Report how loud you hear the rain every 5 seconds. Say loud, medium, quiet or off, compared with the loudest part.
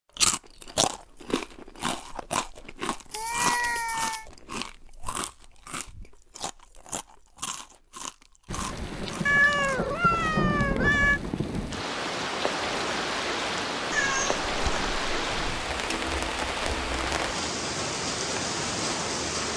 off, medium, loud, loud.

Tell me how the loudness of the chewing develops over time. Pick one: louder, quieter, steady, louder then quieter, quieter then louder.
quieter.